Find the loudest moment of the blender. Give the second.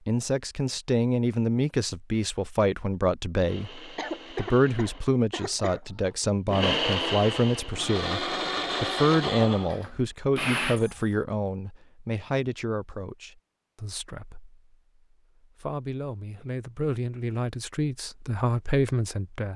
7 s.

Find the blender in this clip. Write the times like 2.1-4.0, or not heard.
3.4-10.8.